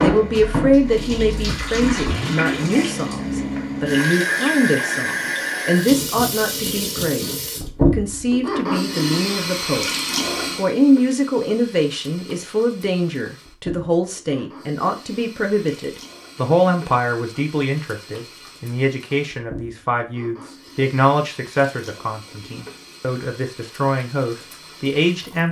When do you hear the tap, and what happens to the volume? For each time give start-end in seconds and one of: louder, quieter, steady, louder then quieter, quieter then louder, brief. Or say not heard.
0.0-25.4 quieter.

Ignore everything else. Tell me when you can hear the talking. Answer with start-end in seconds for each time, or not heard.
0.0-9.9, 10.6-25.4.